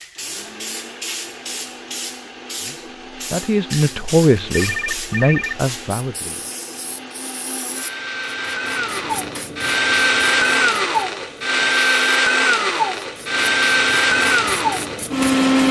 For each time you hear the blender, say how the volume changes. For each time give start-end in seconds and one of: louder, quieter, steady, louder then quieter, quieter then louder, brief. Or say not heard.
0.0-15.6 louder.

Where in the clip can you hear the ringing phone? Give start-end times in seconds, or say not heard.
4.5-5.7.